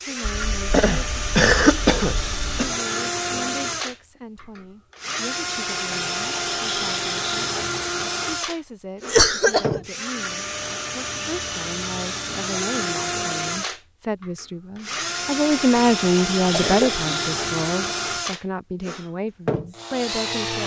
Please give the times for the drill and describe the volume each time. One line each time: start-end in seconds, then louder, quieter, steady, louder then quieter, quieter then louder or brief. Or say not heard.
0.0-20.6 steady.